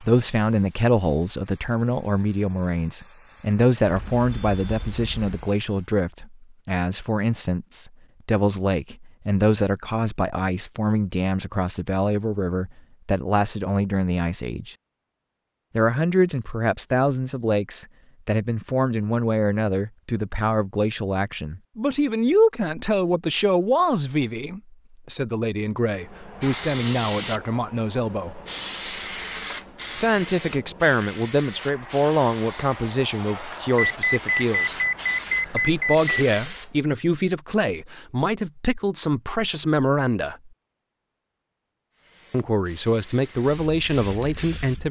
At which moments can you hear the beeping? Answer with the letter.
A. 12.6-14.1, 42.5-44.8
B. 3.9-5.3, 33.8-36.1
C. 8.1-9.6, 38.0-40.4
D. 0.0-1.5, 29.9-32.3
B.